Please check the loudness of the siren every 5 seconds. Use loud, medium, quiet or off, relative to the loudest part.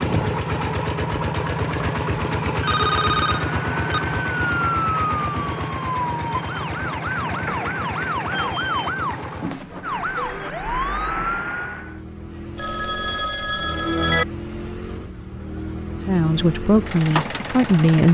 loud, loud, loud, off.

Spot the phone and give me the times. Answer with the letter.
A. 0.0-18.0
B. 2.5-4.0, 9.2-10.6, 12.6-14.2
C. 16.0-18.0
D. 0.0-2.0
B.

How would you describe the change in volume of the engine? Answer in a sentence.
The loudness of the engine goes down, then up.